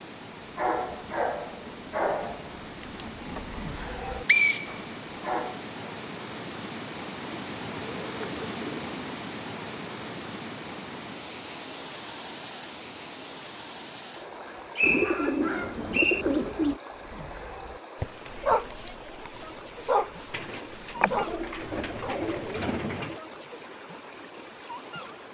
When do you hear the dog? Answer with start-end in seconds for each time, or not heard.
0.6-5.7, 17.0-22.6.